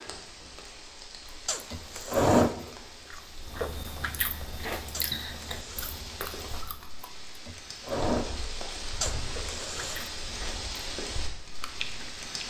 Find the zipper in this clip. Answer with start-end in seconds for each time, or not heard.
1.4-2.5, 4.9-6.0, 9.0-10.1.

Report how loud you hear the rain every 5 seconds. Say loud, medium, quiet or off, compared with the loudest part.
medium, loud, loud.